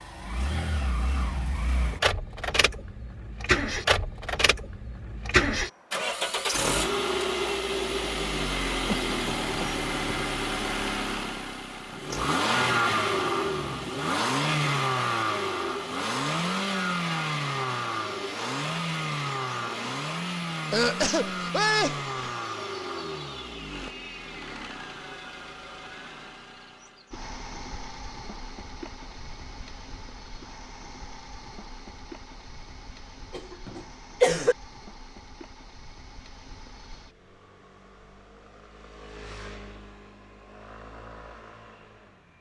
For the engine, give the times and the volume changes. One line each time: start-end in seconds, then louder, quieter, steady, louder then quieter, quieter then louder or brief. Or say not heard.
0.0-42.3 quieter.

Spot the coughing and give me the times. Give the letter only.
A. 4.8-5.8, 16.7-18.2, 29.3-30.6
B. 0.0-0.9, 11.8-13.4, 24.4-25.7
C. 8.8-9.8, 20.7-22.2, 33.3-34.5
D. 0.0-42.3
C.